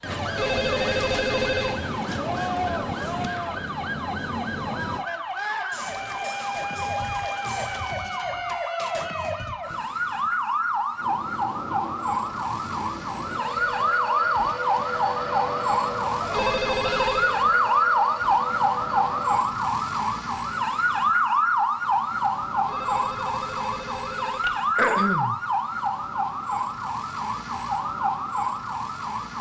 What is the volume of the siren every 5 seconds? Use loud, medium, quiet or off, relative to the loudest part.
medium, medium, loud, loud, loud, medium.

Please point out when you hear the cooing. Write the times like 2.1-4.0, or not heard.
not heard.